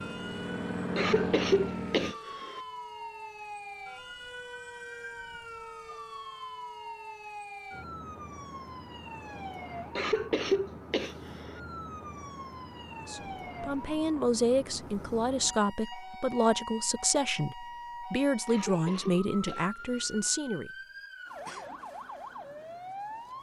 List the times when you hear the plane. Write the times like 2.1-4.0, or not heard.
0.0-2.1.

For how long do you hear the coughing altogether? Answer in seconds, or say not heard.
5 s.